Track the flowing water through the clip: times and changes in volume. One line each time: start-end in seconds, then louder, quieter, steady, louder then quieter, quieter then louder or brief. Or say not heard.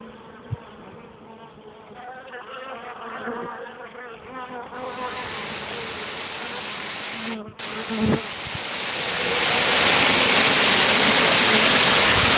4.8-12.3 louder.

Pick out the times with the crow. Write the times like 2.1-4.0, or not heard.
not heard.